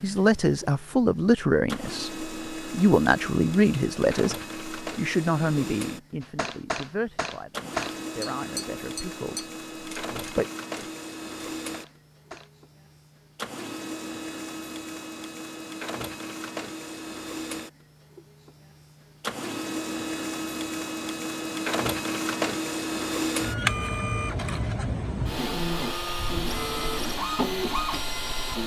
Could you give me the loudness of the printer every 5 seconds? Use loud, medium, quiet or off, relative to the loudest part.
medium, medium, medium, medium, loud, loud.